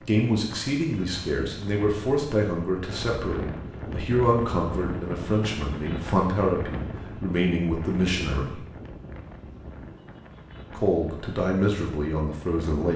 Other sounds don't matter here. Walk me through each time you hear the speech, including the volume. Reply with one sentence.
The speech can be heard from 0.1 to 8.7 s, at a steady volume; and briefly from 10.8 to 12.9 s.